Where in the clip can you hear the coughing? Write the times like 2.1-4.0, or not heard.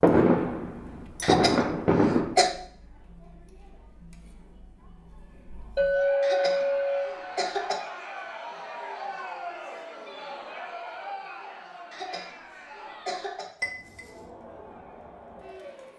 1.2-2.5, 6.2-7.8, 11.9-13.4.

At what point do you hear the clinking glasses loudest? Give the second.
6 s.